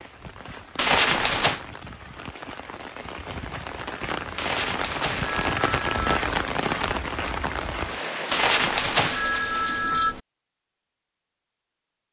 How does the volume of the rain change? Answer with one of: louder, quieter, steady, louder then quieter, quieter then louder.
louder.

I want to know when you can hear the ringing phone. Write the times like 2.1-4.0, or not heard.
0.8-1.6, 4.3-6.2, 8.3-10.2.